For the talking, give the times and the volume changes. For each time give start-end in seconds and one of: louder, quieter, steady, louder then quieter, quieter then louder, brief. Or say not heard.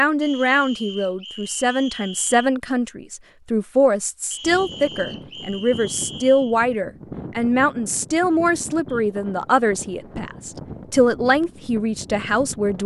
0.0-12.8 steady.